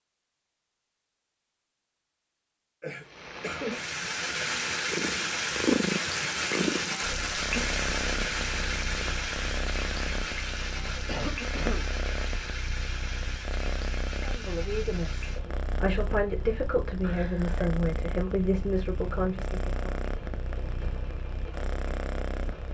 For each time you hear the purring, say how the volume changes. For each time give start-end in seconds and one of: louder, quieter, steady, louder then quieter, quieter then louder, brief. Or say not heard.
4.9-22.6 quieter.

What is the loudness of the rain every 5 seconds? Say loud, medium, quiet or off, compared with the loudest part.
loud, loud, medium, quiet, quiet.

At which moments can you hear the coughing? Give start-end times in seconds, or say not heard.
2.8-3.7, 11.1-11.9, 17.0-17.7.